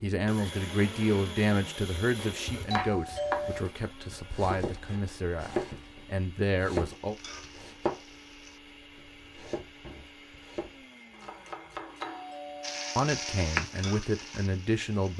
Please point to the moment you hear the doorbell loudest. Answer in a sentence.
The loudest moment of the doorbell is at 3 seconds.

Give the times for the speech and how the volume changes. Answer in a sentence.
The speech can be heard from 0.0 to 7.2 s, getting quieter then louder; and briefly from 12.9 to 15.1 s.